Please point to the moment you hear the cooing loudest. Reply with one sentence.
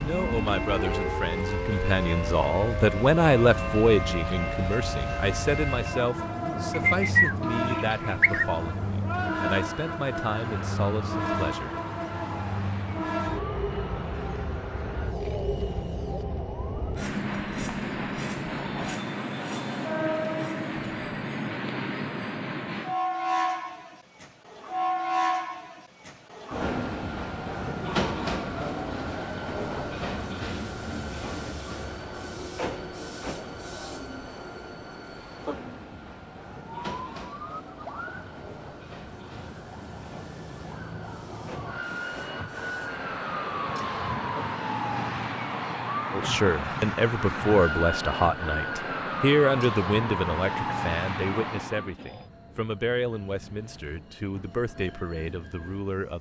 The volume of the cooing peaks at 7 seconds.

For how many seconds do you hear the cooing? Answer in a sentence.
You can hear the cooing for 2 seconds altogether.